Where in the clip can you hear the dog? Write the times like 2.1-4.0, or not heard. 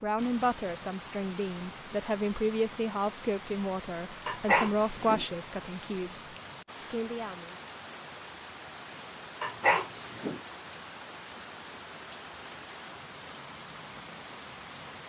4.2-5.2, 9.4-10.4.